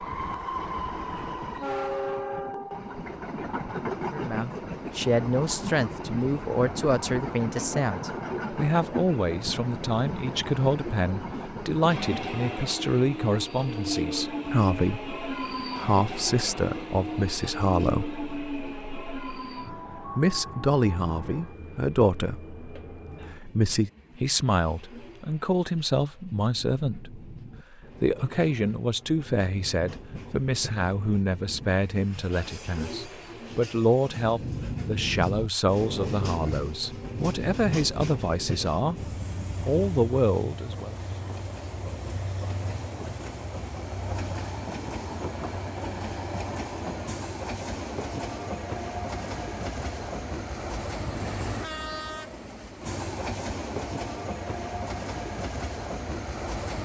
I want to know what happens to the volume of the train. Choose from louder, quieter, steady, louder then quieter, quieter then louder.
quieter then louder.